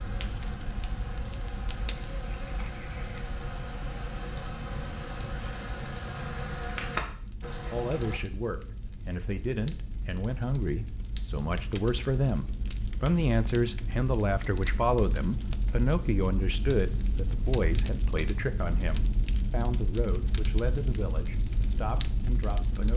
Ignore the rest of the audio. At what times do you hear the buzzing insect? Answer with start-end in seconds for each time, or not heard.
0.0-8.2.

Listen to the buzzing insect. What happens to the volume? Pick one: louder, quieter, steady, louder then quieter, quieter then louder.
louder.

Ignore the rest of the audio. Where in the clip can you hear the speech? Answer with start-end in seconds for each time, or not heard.
7.7-22.9.